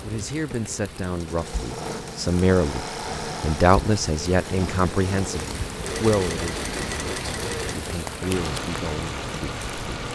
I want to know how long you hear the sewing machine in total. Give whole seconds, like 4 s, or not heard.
10 s.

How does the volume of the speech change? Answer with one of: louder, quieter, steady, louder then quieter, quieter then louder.
louder then quieter.